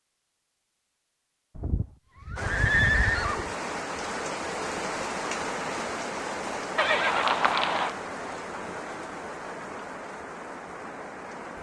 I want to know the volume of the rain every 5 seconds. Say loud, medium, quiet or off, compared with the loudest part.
loud, loud, medium.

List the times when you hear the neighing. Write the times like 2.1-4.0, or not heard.
1.6-3.5, 6.8-7.9.